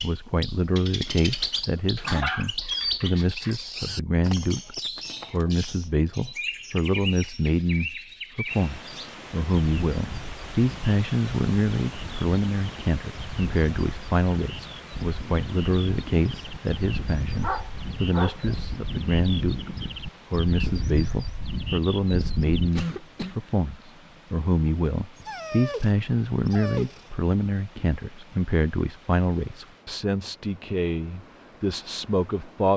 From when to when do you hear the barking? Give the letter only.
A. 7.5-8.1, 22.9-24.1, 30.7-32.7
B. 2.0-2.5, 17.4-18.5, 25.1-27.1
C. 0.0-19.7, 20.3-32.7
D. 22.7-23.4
B.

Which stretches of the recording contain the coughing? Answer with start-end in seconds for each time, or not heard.
22.7-23.4.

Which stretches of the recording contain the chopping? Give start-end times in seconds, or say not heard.
not heard.